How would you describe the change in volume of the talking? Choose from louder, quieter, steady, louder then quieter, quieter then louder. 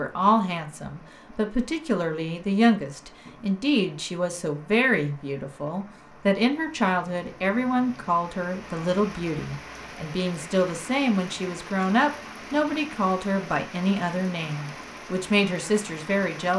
steady.